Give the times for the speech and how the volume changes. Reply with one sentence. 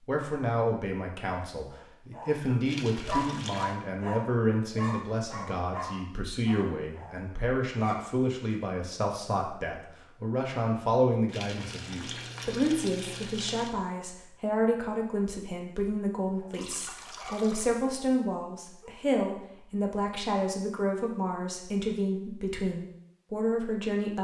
You can hear the speech from 0.1 to 24.1 s, at a steady volume.